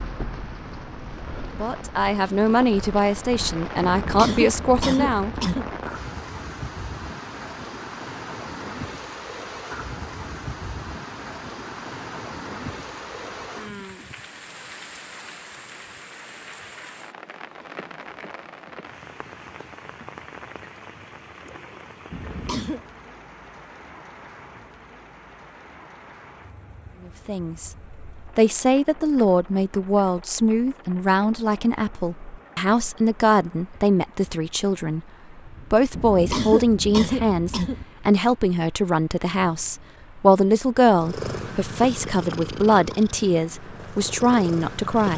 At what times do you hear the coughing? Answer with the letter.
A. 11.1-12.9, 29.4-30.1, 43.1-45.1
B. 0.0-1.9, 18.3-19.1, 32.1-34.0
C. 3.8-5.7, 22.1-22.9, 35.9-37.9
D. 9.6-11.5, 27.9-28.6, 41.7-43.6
C.